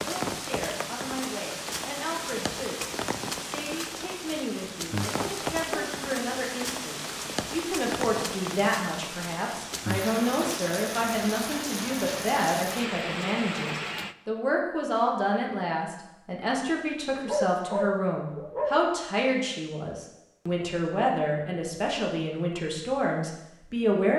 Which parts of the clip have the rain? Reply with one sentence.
The rain can be heard from 0.0 to 14.2 s.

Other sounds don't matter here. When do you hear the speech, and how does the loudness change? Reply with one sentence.
You can hear the speech from 0.0 to 24.1 s, getting louder.